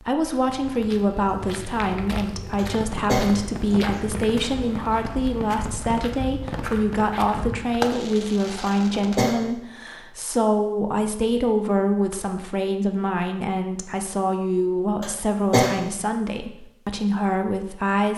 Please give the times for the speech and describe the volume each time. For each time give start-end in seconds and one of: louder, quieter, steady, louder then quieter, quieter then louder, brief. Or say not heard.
0.0-18.1 steady.